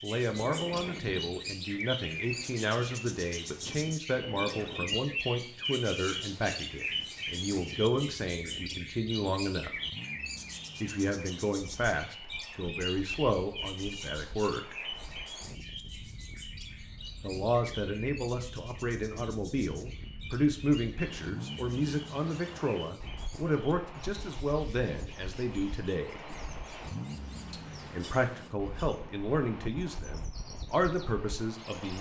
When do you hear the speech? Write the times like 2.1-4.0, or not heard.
0.0-9.7, 10.8-14.8, 17.2-26.2, 27.5-31.9.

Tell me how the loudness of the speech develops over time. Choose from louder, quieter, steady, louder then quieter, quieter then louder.
steady.